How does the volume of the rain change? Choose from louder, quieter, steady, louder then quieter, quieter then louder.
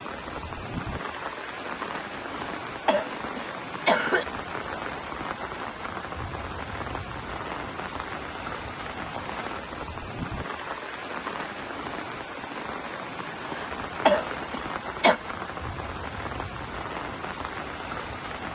steady.